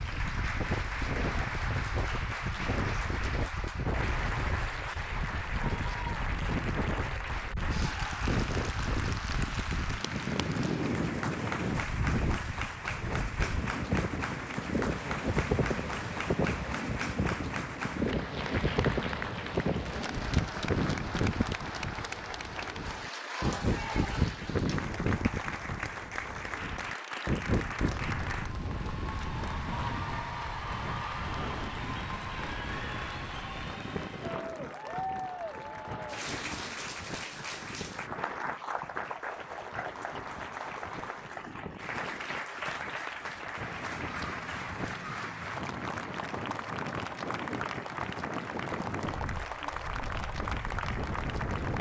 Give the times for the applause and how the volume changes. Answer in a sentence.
The applause can be heard from 0.0 to 51.7 s, at a steady volume.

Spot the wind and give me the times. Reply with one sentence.
You can hear the wind from 0.0 to 51.7 s.